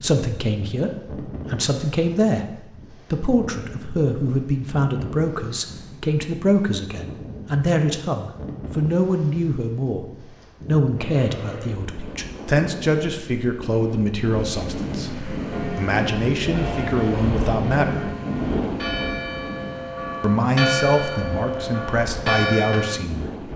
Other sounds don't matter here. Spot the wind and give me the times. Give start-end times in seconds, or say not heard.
0.0-23.5.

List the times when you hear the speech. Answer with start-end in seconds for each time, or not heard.
0.0-2.5, 3.1-18.1, 20.2-23.5.